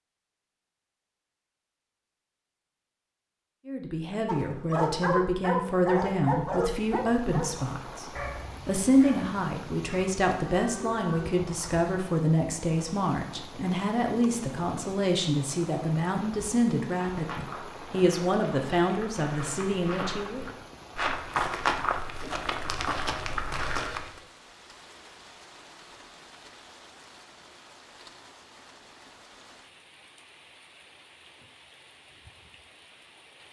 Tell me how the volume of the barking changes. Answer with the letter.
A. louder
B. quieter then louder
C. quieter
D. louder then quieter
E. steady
C.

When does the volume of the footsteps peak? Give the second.
22 s.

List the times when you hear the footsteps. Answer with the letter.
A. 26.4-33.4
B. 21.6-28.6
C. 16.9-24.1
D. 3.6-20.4
C.